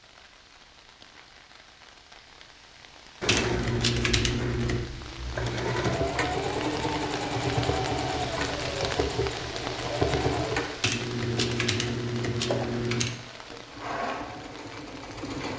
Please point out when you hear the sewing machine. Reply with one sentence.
The sewing machine can be heard from 3.2 to 15.5 s.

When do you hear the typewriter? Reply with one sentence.
The typewriter can be heard from 3.2 to 4.8 s and from 10.8 to 13.2 s.